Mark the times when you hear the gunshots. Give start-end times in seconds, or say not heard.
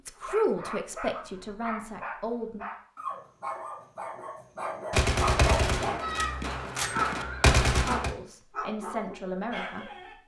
4.9-8.1.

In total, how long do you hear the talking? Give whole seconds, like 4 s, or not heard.
5 s.